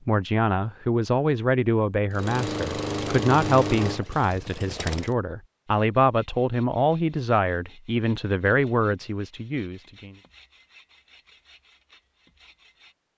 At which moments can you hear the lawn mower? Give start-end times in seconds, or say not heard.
2.1-5.2.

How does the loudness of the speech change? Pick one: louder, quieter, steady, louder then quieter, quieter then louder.
steady.